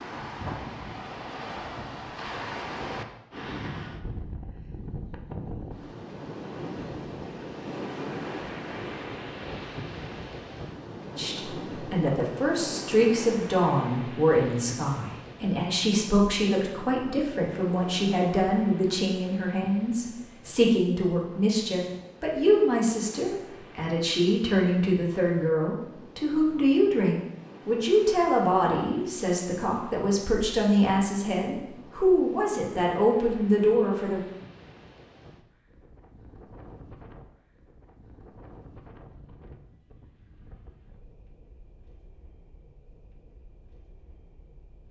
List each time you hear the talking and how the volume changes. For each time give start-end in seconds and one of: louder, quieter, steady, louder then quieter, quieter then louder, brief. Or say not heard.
11.2-34.2 steady.